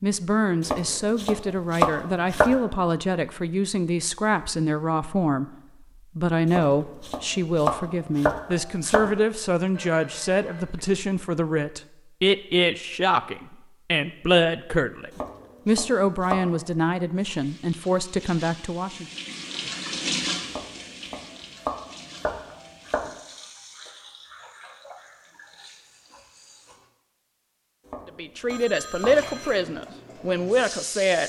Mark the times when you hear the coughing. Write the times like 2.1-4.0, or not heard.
not heard.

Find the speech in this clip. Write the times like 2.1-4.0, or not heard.
0.0-19.1, 28.1-31.2.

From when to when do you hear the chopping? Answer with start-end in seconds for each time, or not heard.
0.7-2.5, 6.5-9.1, 15.1-16.5, 20.4-23.1, 27.9-29.2.